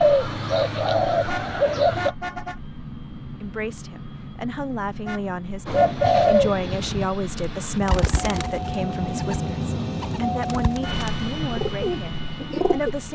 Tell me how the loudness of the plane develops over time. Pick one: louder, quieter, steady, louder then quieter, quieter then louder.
louder.